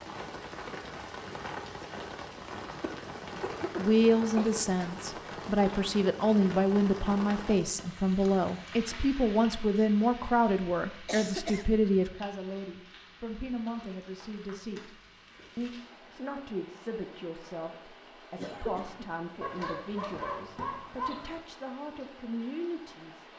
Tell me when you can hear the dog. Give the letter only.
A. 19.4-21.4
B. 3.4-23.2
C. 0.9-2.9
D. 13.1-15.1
A.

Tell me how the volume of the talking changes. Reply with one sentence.
The loudness of the talking goes down.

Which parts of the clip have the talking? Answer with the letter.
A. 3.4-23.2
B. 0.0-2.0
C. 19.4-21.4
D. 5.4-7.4
A.